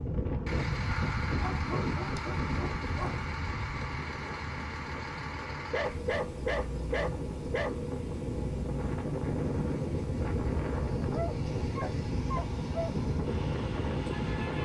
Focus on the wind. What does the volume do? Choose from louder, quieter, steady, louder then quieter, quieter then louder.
quieter then louder.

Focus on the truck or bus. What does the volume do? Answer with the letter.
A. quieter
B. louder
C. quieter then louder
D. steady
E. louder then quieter
A.